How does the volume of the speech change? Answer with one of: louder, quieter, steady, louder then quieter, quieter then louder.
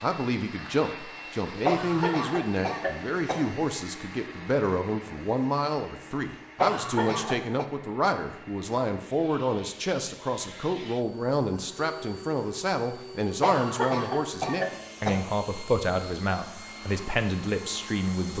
steady.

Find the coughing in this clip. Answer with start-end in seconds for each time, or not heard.
1.6-3.5, 6.5-7.7, 13.4-15.2.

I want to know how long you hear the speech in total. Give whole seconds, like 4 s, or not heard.
18 s.